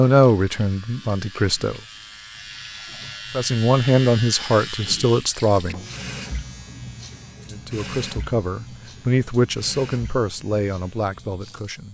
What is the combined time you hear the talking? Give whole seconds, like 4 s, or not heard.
9 s.